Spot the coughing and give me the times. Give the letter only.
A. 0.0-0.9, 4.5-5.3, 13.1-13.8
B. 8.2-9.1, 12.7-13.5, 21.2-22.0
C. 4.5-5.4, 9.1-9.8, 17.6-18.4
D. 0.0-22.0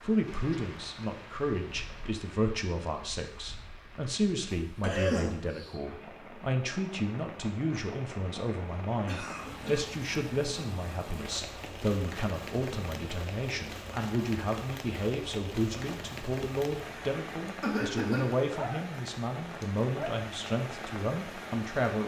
C.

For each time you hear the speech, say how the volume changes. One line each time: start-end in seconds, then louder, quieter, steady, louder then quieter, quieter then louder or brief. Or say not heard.
0.0-22.0 steady.